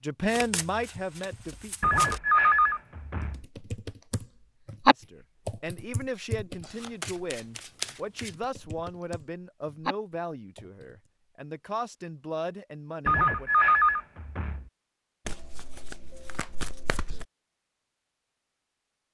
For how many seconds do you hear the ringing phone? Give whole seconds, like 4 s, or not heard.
3 s.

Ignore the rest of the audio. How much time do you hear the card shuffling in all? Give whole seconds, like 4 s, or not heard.
6 s.